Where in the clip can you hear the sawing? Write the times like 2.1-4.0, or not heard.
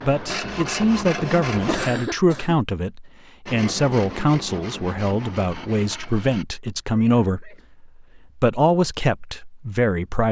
0.0-1.9, 3.5-6.5.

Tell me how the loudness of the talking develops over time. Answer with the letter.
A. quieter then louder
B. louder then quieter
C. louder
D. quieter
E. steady
E.